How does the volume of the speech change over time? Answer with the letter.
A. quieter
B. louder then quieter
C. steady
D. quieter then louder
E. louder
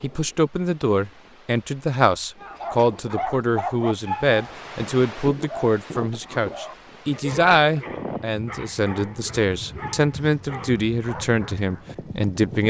C.